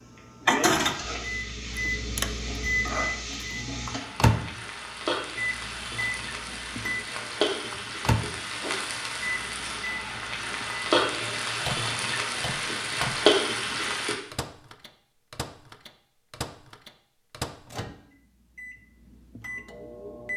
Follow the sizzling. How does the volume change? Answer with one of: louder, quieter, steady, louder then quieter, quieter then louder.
louder.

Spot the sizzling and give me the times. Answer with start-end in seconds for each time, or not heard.
0.0-14.2.